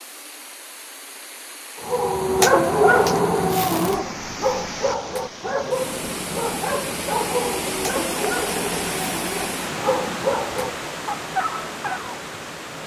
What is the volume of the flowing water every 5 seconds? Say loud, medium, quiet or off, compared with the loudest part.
medium, loud, loud.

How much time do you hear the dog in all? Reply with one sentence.
The dog can be heard for 10 seconds in total.